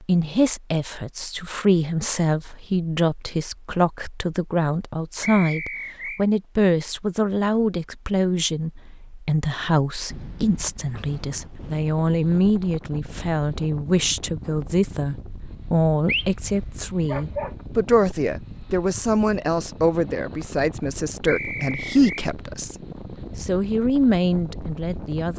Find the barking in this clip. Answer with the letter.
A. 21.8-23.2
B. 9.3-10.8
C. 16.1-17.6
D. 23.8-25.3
C.